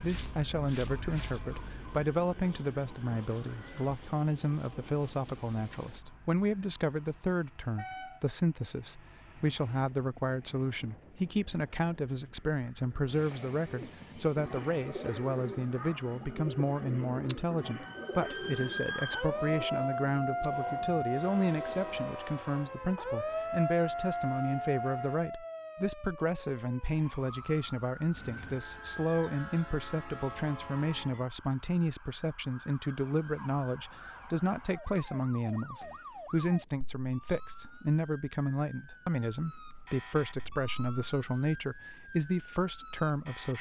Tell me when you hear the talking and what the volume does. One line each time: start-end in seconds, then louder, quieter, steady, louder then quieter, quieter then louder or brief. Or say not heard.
0.0-43.5 steady.